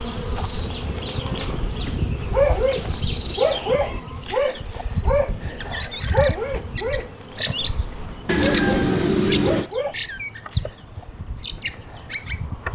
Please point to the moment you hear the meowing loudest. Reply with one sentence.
The loudest moment of the meowing is at 9 seconds.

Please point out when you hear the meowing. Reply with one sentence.
The meowing can be heard from 3.6 to 4.2 s and from 8.2 to 9.7 s.